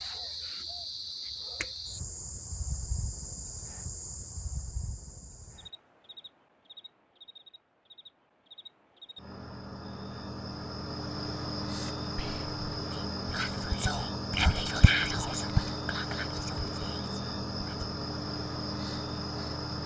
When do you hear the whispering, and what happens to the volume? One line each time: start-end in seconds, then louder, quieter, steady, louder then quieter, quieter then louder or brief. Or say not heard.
11.7-17.9 louder then quieter.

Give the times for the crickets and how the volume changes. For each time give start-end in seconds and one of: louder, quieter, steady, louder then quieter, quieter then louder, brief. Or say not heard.
0.0-19.8 quieter then louder.